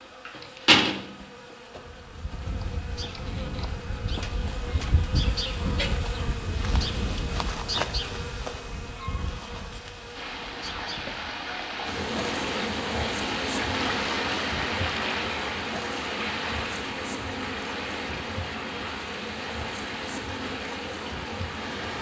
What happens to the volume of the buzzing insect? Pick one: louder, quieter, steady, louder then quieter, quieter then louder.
quieter.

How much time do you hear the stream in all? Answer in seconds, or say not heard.
12 s.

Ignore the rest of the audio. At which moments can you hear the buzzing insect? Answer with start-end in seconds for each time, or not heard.
0.0-21.9.